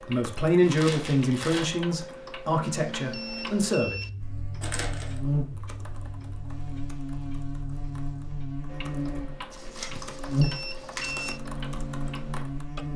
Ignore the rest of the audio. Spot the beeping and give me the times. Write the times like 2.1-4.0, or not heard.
2.9-4.1, 9.9-11.4.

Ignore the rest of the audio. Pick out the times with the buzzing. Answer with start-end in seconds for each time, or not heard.
4.2-12.9.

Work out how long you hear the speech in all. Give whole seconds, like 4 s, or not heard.
4 s.